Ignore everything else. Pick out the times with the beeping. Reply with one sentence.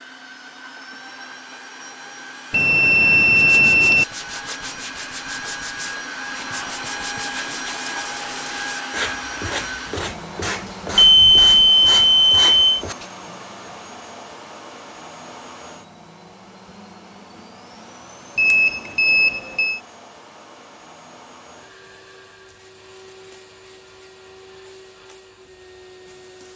You can hear the beeping from 2.5 to 4.0 s, from 10.9 to 12.8 s and from 18.4 to 19.8 s.